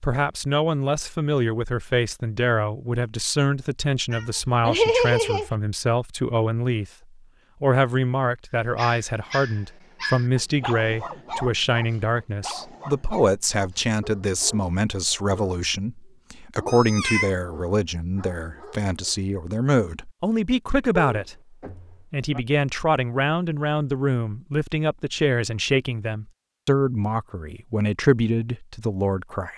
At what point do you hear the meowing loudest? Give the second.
5 s.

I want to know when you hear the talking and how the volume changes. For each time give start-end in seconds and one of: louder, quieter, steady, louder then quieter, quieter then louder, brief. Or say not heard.
0.0-6.9 steady
7.6-29.5 steady.